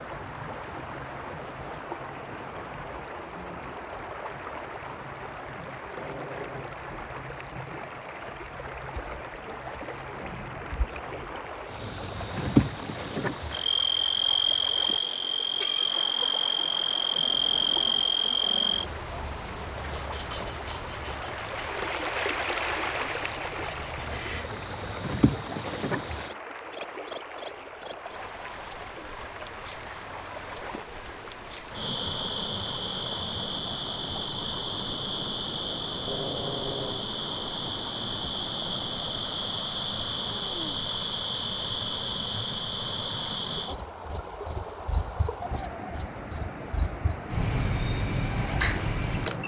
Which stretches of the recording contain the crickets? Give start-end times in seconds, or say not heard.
0.0-49.4.